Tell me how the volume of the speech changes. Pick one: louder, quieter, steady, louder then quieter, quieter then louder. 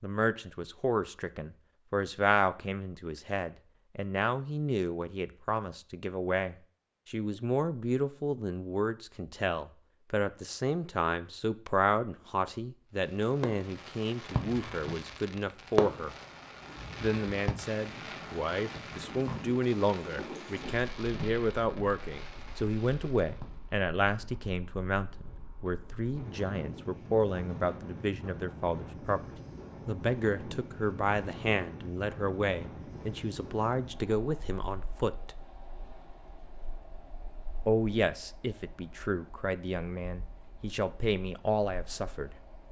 steady.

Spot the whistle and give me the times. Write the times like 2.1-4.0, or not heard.
not heard.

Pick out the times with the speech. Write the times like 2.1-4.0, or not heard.
0.0-16.1, 17.0-29.2, 29.9-35.3, 37.6-42.4.